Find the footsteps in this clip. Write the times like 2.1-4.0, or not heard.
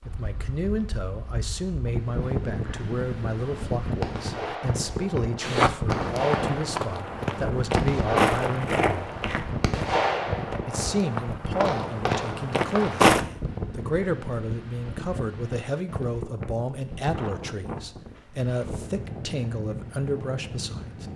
5.4-13.2.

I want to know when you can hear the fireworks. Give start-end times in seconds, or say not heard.
3.4-13.1.